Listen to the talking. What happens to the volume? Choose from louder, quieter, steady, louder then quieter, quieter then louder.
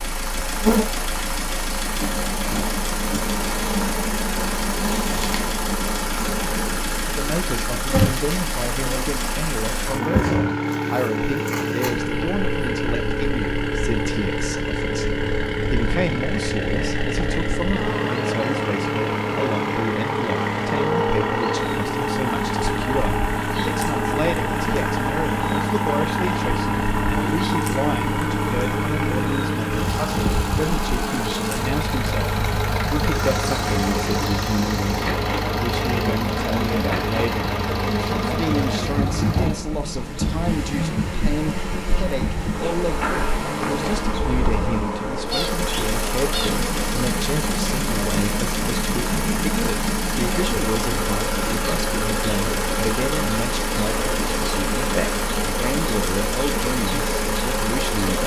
steady.